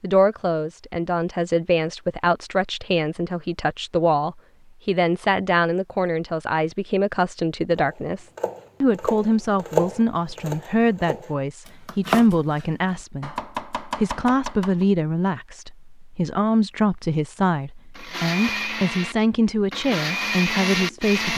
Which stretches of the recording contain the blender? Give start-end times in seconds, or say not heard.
17.9-21.3.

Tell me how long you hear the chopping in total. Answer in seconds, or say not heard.
7 s.